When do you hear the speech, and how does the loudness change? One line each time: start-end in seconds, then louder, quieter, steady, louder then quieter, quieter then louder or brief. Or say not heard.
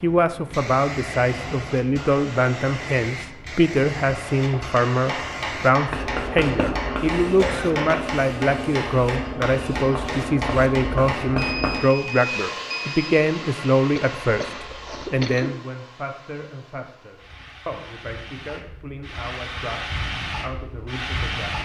0.0-21.6 quieter.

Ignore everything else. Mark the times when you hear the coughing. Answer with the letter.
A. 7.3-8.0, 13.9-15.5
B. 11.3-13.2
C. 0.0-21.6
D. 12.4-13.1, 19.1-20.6
A.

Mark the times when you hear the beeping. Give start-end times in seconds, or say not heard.
11.3-13.2.